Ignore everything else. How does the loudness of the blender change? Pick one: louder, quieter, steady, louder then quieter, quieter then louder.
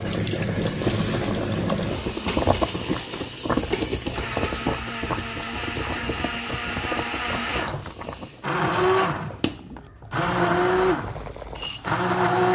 louder.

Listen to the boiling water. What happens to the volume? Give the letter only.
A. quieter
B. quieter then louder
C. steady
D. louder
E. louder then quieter
A.